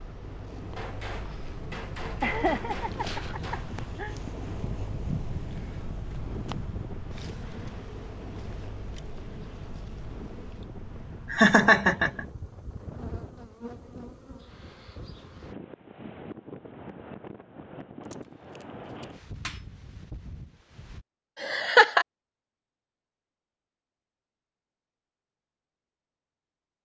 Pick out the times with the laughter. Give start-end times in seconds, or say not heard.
2.2-4.2, 11.3-12.2, 21.4-22.1.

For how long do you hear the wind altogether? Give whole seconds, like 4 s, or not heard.
21 s.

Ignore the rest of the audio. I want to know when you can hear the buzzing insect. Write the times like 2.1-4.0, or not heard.
0.0-15.6.